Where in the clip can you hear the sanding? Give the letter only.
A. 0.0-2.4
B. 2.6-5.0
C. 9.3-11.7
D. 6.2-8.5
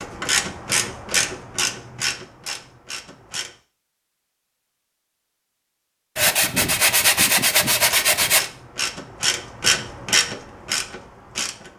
D.